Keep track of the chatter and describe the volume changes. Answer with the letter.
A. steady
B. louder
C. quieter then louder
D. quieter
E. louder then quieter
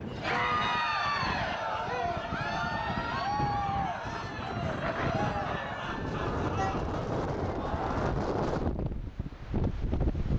D.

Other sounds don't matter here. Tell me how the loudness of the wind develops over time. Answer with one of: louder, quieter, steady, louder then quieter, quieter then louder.
louder.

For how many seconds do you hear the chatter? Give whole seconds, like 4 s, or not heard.
8 s.